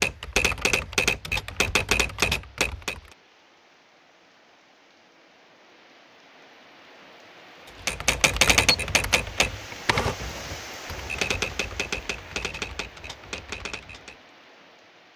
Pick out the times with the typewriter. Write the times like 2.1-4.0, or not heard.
0.0-3.0, 7.8-14.2.